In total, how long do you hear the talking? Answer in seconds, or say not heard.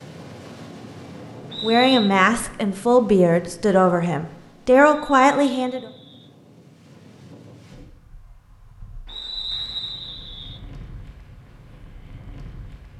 4 s.